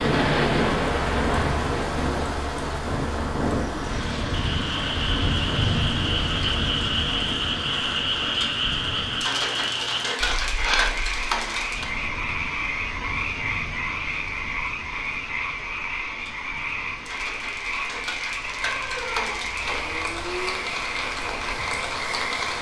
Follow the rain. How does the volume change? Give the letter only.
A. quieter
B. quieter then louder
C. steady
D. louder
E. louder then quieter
B.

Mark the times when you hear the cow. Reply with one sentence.
The cow can be heard from 18.6 to 20.6 s.